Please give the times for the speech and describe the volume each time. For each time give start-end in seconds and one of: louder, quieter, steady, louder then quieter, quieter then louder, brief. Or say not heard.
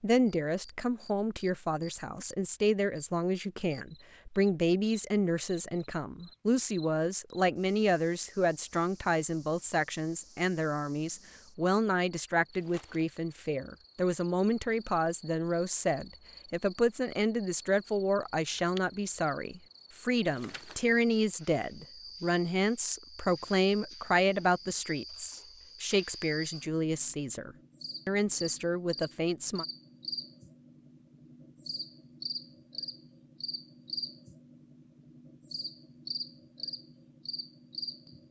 0.0-29.6 steady.